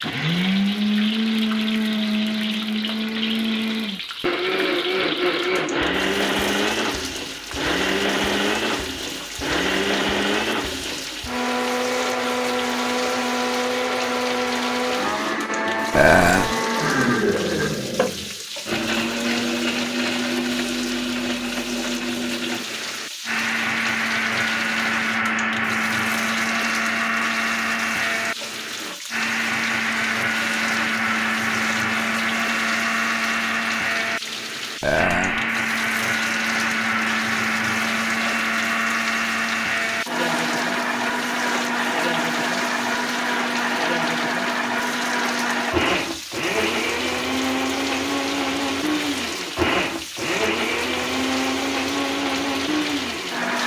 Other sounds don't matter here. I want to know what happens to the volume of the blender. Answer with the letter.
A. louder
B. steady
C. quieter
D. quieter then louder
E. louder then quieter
B.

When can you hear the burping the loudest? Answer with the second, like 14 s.
16 s.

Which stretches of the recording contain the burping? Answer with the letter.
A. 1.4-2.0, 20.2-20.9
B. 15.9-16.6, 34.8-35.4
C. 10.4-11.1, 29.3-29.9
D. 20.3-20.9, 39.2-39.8
B.